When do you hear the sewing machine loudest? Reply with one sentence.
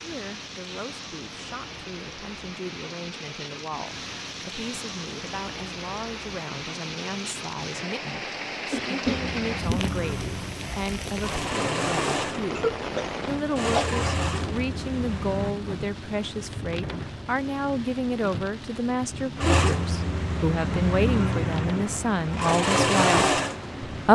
The volume of the sewing machine peaks at 23 seconds.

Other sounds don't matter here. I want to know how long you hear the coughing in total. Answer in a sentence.
You can hear the coughing for 2 seconds altogether.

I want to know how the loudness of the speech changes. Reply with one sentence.
The loudness of the speech goes up.